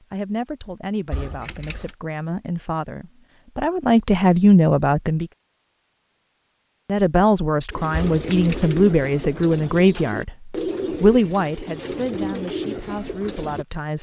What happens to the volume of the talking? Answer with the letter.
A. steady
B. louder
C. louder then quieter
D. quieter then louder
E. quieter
C.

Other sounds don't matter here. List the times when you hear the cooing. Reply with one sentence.
The cooing can be heard from 7.7 to 13.7 s.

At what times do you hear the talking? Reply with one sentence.
The talking can be heard from 0.1 to 5.2 s and from 6.8 to 13.9 s.